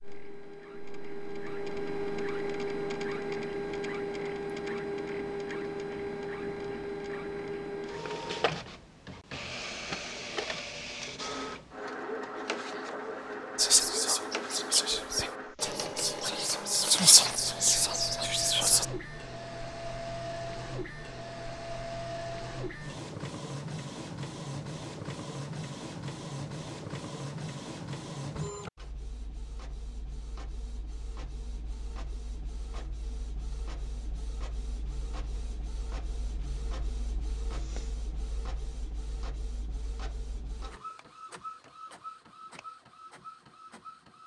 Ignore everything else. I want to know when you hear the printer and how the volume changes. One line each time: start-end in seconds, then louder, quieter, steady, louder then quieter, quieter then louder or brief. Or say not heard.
0.0-44.2 quieter.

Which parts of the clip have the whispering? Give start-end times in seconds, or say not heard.
13.6-18.9.